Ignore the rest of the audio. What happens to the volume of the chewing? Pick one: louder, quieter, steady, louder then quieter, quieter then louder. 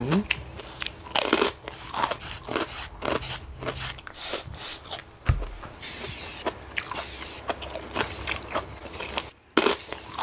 quieter then louder.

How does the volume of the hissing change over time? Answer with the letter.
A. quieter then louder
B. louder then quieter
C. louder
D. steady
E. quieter
B.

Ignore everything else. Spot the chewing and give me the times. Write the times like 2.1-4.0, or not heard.
0.0-10.1.